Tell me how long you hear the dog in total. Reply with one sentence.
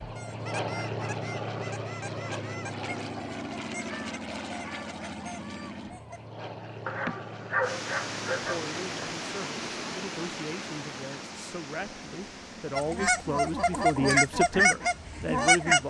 You can hear the dog for 2 seconds altogether.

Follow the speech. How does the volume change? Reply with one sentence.
The loudness of the speech goes up.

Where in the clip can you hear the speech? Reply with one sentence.
The speech can be heard from 8.4 to 15.8 s.